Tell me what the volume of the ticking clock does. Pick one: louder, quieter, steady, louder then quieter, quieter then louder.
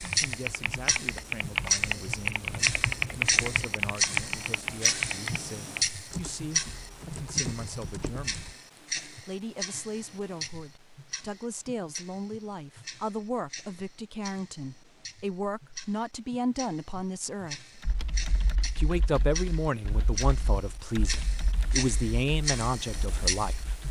quieter then louder.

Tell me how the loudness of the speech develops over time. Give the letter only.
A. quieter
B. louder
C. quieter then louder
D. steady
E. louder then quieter
B.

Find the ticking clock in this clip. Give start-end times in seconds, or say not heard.
0.0-23.8.